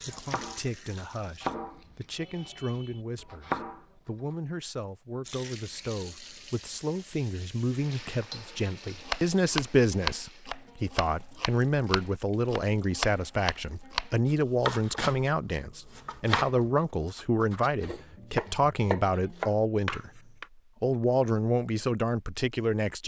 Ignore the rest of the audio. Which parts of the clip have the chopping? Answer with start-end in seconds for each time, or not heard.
0.0-3.9, 9.1-20.4.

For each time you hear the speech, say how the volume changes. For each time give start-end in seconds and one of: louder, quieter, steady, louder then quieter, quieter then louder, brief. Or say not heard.
0.0-20.2 louder
20.8-23.0 brief.